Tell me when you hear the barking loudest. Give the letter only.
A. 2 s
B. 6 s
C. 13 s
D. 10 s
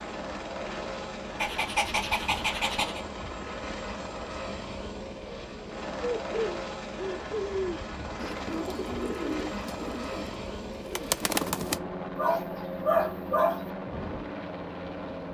C.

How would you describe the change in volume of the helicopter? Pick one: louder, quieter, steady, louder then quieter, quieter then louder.
steady.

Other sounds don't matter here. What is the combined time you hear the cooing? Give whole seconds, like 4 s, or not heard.
6 s.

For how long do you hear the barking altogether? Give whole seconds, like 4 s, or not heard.
3 s.